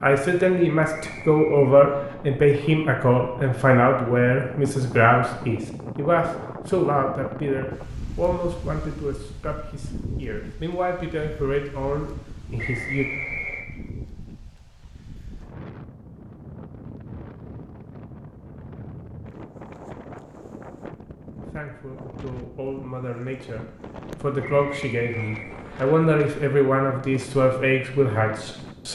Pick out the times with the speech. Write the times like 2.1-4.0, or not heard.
0.0-13.1, 21.4-28.9.